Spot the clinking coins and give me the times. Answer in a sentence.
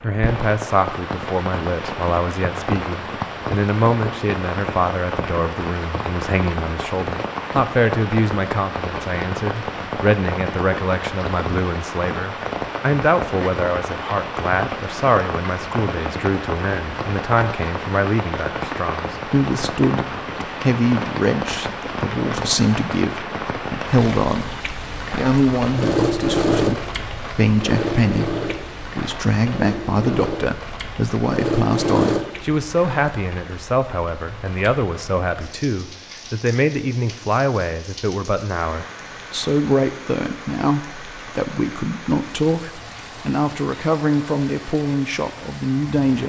The clinking coins can't be heard in this clip.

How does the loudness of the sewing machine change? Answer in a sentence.
The loudness of the sewing machine goes down, then up.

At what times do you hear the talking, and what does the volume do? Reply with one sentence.
You can hear the talking from 0.0 to 46.2 s, at a steady volume.